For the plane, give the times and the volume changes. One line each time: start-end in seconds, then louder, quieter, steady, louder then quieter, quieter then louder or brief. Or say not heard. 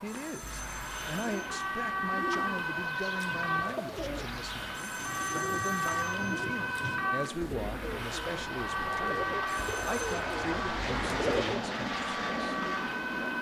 0.0-13.3 louder.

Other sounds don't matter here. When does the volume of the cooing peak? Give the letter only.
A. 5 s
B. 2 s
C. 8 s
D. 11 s
D.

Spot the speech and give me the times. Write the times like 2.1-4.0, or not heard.
0.0-12.6.